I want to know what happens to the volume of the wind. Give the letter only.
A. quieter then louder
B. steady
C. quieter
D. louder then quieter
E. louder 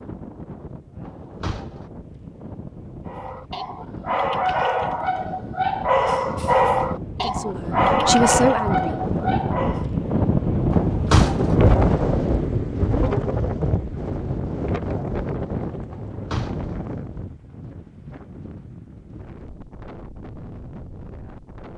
D.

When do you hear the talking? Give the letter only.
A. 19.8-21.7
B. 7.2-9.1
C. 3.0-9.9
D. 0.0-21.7
B.